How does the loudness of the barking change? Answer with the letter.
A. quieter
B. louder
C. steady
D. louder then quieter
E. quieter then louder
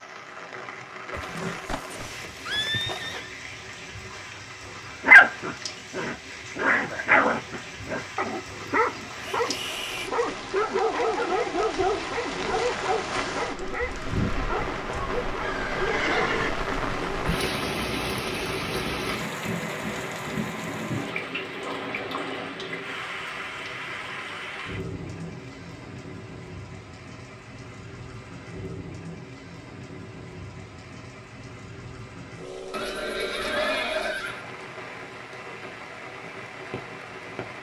A.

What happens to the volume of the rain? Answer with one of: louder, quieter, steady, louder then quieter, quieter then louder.
louder then quieter.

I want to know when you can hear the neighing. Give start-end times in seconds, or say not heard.
1.1-3.3, 15.4-16.6, 32.7-34.5.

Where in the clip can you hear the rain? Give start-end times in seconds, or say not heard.
0.0-37.5.